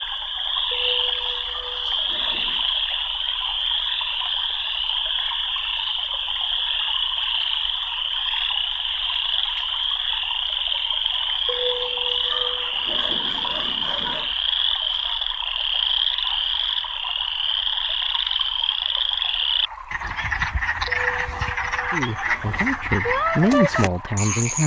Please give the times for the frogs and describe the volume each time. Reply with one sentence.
The frogs can be heard from 0.0 to 24.6 s, at a steady volume.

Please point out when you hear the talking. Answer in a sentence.
The talking can be heard from 21.9 to 24.6 s.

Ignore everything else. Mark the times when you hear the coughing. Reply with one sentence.
You can't hear the coughing here.